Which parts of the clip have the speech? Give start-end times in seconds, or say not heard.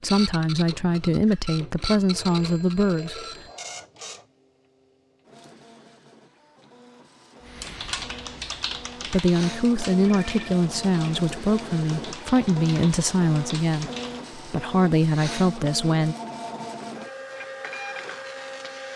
0.0-3.2, 9.1-16.1.